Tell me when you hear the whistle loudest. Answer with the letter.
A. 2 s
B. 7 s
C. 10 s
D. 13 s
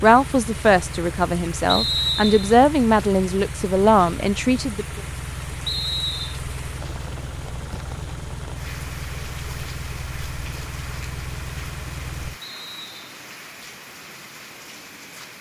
A.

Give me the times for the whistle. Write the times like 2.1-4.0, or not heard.
1.6-2.5, 5.7-6.4, 12.4-13.2.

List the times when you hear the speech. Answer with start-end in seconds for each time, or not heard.
0.0-5.0.